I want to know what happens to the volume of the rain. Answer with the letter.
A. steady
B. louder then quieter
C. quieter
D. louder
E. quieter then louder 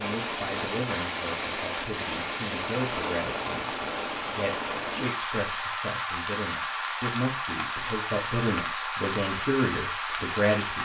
A.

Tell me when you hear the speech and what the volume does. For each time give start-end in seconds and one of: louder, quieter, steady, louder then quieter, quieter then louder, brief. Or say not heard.
0.0-10.8 louder.